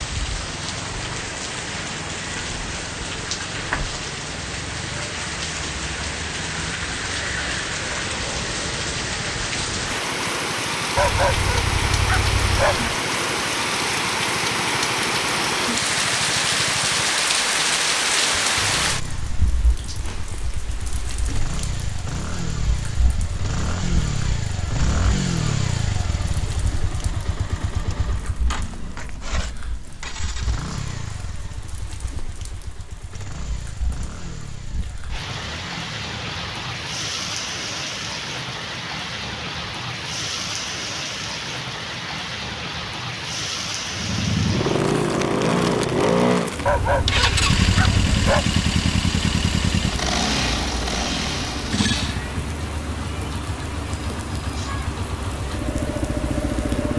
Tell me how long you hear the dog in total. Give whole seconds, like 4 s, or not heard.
4 s.